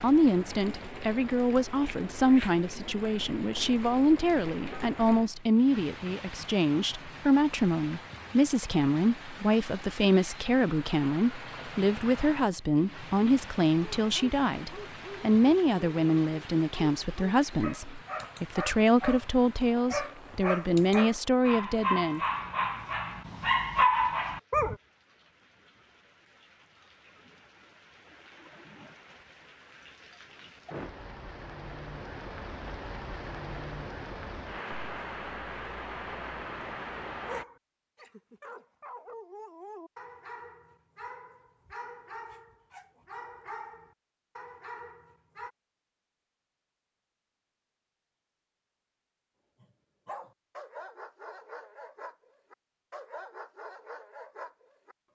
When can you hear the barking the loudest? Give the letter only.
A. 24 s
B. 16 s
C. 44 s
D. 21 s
A.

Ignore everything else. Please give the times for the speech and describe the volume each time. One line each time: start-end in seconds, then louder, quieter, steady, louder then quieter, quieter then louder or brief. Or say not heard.
0.0-22.2 steady.